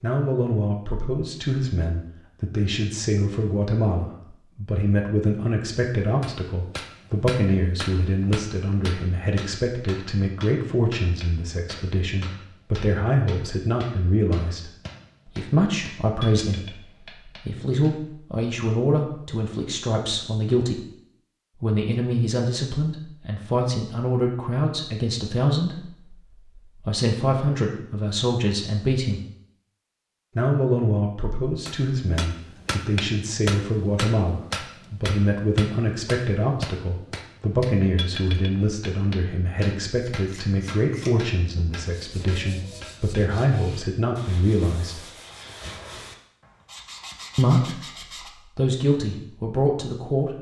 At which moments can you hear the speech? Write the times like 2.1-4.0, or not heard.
0.0-20.9, 21.6-29.2, 30.4-45.0, 47.4-47.9, 48.5-50.3.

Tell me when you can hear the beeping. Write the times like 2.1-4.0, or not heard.
not heard.